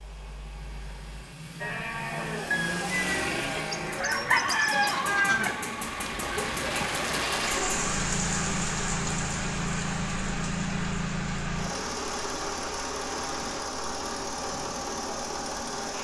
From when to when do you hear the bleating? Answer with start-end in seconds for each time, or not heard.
1.6-7.8.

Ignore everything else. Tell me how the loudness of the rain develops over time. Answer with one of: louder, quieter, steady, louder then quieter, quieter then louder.
quieter.